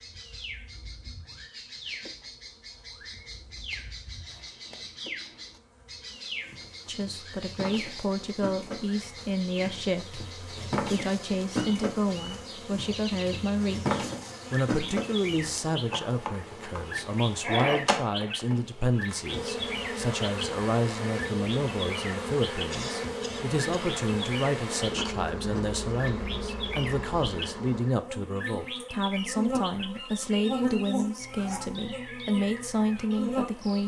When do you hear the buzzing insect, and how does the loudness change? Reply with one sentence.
You can hear the buzzing insect from 0.0 to 33.8 s, getting louder.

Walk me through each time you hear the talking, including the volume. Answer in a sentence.
The talking can be heard from 6.8 to 33.8 s, at a steady volume.